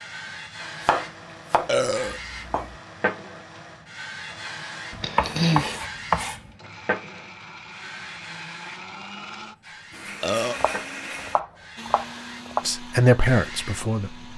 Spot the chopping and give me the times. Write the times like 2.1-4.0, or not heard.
0.8-2.8, 4.9-6.5, 10.6-12.7.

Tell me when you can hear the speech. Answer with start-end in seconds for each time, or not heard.
12.7-14.2.